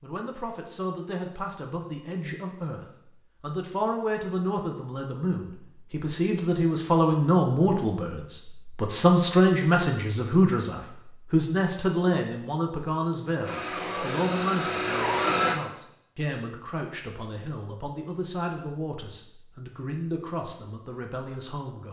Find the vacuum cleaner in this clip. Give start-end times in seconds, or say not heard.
13.4-15.6.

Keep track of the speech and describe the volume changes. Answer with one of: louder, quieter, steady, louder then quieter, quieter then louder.
louder then quieter.